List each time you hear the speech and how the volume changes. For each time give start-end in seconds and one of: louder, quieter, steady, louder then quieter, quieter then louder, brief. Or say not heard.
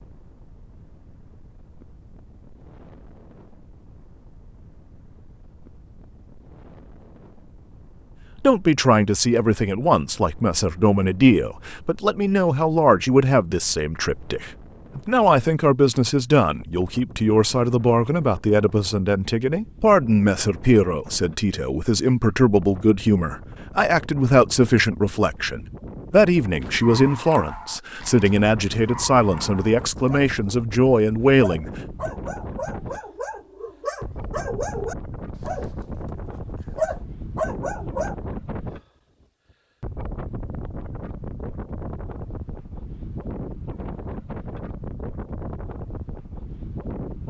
8.4-31.7 steady.